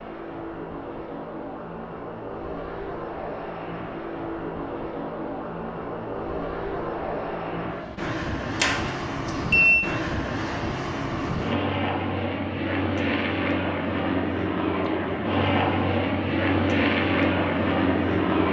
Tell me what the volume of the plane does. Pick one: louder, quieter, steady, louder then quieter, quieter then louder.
louder.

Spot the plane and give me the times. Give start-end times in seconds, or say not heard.
0.0-18.4.